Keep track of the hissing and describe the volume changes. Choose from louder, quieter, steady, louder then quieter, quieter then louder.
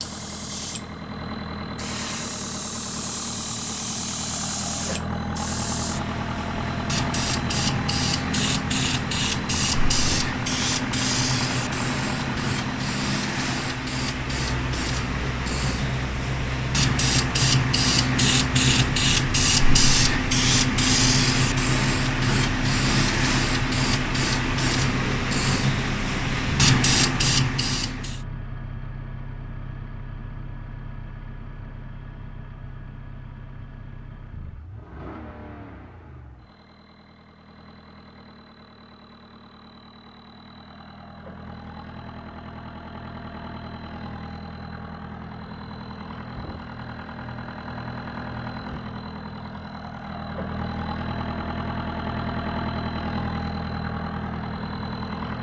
louder.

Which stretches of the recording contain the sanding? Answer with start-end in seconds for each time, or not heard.
not heard.